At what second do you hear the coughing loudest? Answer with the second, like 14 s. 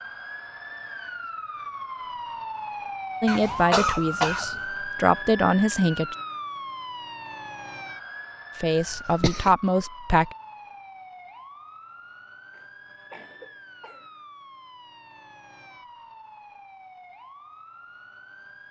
4 s.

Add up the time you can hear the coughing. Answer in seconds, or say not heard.
4 s.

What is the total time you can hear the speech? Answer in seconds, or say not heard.
5 s.